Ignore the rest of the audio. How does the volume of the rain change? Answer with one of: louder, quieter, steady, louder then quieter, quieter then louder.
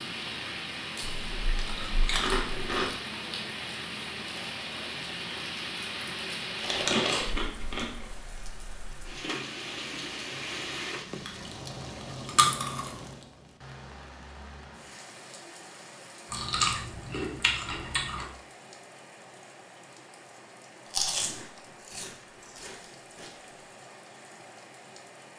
quieter.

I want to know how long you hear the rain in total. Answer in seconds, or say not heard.
25 s.